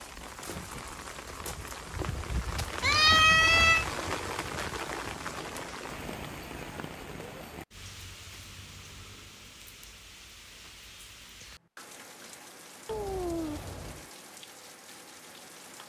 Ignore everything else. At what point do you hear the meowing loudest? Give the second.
3 s.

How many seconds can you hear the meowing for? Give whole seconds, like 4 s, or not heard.
2 s.